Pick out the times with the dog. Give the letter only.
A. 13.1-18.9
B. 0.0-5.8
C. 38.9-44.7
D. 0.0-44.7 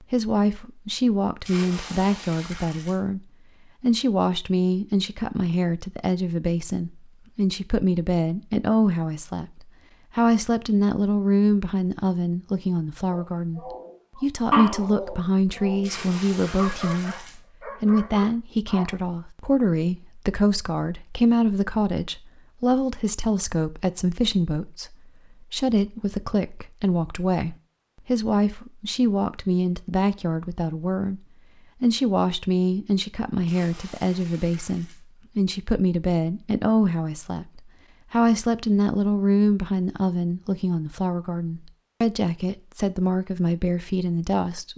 A.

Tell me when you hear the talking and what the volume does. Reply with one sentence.
The talking can be heard from 0.0 to 44.7 s, at a steady volume.